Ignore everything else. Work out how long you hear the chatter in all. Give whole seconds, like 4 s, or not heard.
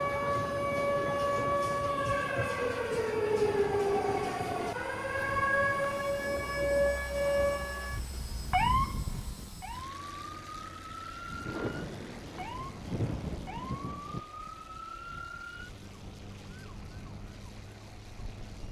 not heard.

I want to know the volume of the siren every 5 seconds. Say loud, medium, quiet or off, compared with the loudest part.
loud, loud, quiet, quiet.